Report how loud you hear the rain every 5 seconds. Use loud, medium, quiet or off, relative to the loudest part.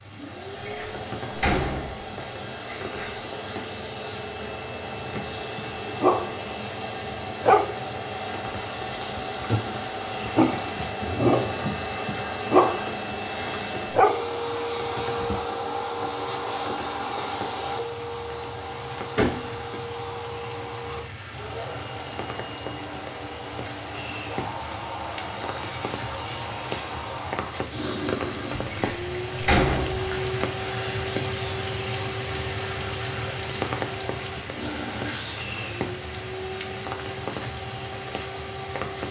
medium, medium, medium, medium, medium, loud, loud, loud.